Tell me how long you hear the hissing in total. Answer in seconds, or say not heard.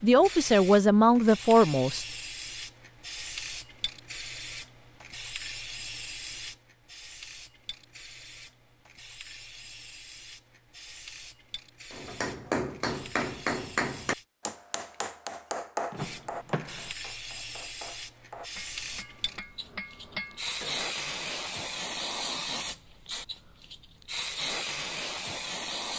24 s.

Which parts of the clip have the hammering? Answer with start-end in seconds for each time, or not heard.
11.9-20.9.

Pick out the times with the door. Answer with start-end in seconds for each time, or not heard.
15.9-16.9.